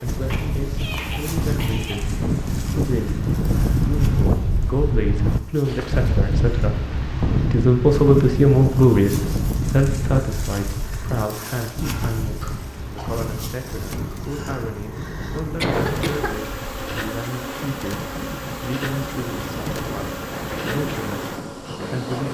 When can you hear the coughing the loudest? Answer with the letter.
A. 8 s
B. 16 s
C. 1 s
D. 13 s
B.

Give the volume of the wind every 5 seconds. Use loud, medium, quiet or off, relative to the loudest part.
loud, loud, medium, medium, medium.